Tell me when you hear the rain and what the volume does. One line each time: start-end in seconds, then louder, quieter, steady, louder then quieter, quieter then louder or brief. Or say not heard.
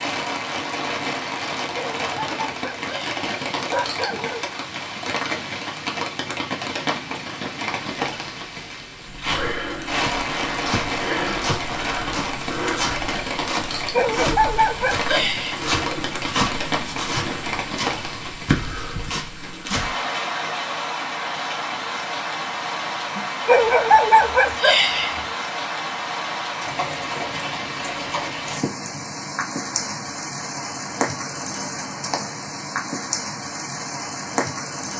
0.0-34.9 steady.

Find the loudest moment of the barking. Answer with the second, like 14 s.
24 s.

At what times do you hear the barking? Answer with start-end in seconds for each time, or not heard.
1.8-4.5, 13.9-15.9, 23.4-25.2.